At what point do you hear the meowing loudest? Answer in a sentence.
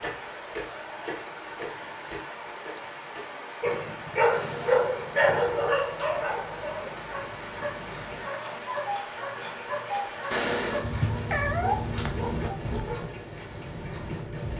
The volume of the meowing peaks at 12 seconds.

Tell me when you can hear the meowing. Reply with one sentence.
The meowing can be heard from 10.8 to 12.8 s.